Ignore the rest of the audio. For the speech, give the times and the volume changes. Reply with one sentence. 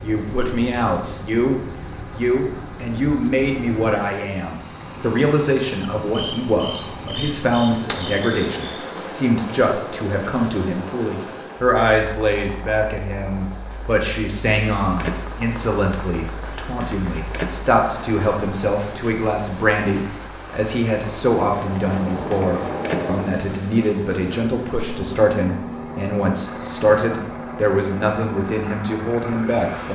You can hear the speech from 0.0 to 29.9 s, at a steady volume.